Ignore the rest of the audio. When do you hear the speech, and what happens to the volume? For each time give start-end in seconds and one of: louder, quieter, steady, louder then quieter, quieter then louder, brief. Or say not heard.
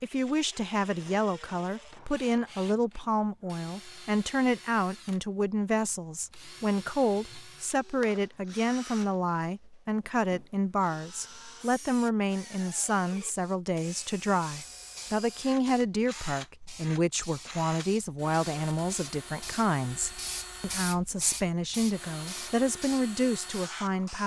0.0-24.2 steady.